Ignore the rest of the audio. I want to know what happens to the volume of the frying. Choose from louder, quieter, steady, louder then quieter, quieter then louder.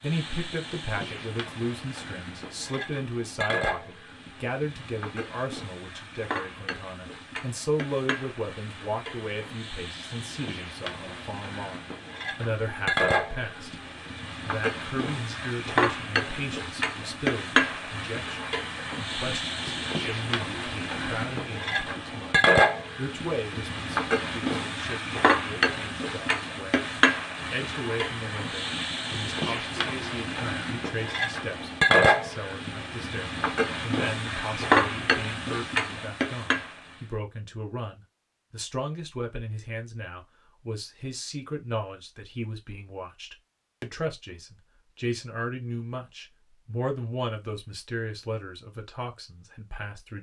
louder.